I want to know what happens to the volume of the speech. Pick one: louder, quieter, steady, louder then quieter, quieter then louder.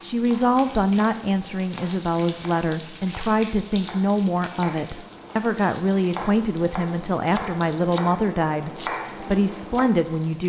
steady.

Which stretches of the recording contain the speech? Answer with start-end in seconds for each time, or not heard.
0.0-10.4.